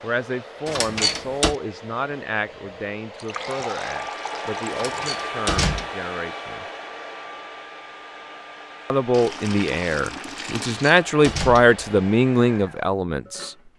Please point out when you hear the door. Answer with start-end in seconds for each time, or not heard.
0.7-1.6, 4.7-5.8, 10.7-11.8.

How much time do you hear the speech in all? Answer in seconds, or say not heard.
11 s.